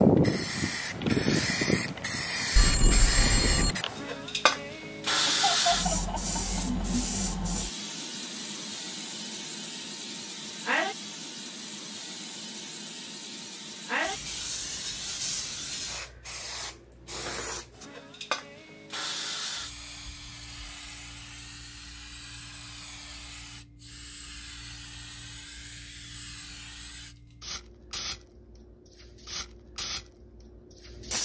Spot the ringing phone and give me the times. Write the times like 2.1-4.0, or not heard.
2.5-3.8.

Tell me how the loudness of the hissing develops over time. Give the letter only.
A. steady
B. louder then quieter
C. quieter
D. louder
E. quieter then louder
C.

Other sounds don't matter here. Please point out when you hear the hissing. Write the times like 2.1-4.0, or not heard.
0.0-31.2.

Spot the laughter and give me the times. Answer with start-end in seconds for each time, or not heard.
5.2-6.8.